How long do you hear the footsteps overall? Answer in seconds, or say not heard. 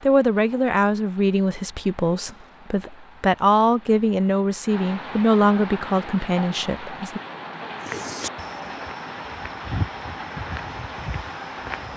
4 s.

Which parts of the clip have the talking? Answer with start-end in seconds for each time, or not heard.
0.0-7.2.